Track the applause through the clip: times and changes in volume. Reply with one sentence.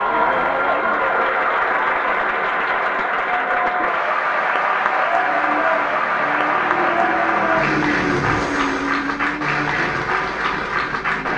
The applause can be heard from 0.0 to 11.3 s, at a steady volume.